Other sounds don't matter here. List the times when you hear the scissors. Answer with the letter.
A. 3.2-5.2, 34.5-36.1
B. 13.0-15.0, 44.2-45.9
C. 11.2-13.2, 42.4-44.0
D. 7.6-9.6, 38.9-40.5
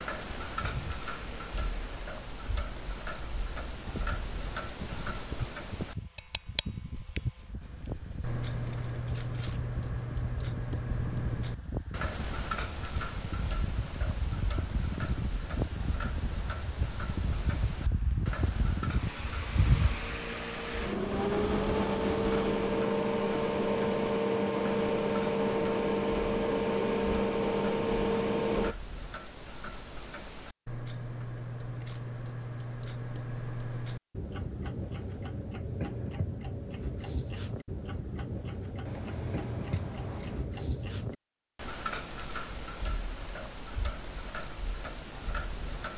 D.